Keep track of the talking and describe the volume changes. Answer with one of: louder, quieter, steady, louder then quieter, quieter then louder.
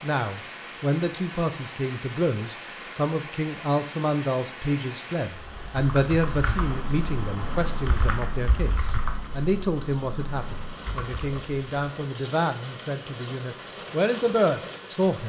steady.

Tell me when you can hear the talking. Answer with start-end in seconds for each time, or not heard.
0.0-15.2.